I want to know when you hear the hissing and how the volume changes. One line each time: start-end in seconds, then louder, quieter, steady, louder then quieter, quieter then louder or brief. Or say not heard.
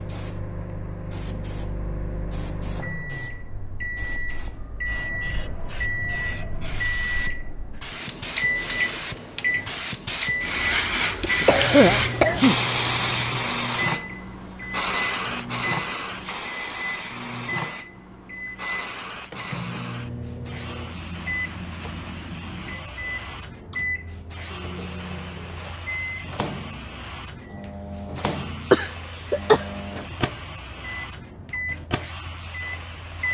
0.0-33.2 louder then quieter.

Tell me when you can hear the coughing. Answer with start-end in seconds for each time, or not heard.
11.2-12.7, 28.7-29.6.